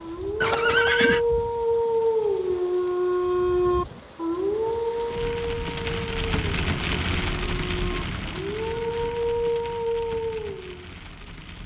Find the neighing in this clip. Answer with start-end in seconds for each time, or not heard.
0.4-1.2.